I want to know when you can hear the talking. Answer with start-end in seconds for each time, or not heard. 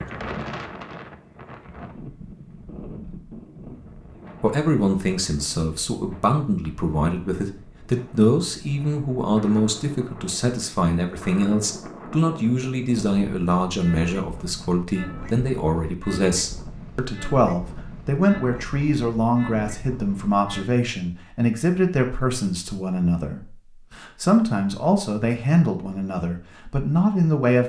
4.4-27.6.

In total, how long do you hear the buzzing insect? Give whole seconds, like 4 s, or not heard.
not heard.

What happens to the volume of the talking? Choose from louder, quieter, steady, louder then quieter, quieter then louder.
steady.